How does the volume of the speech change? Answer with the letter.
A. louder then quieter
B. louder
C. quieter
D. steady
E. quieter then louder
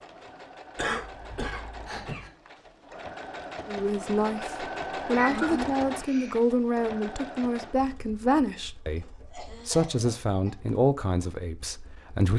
D.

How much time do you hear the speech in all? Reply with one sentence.
The speech can be heard for 9 seconds in total.